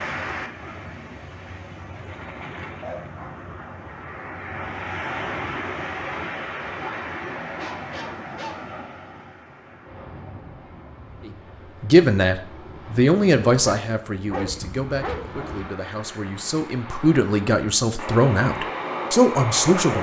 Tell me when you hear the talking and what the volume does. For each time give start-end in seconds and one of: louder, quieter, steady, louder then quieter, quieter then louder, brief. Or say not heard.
11.2-19.9 quieter then louder.